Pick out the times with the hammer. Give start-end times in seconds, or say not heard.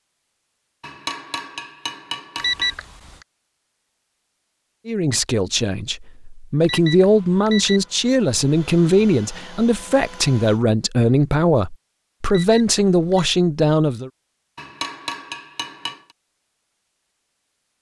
0.8-2.8, 14.6-16.1.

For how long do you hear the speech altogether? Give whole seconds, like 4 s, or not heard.
9 s.